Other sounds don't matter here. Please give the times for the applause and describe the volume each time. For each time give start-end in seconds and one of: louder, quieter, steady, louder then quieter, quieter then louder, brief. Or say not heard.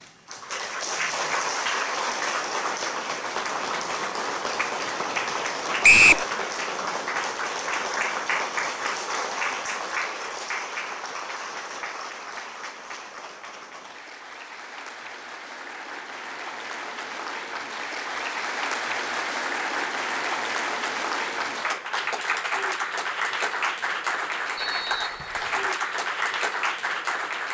0.0-27.4 quieter then louder.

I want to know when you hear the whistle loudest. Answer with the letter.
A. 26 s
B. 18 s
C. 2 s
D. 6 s
D.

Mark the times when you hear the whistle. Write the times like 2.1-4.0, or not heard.
5.8-6.2, 24.6-25.6.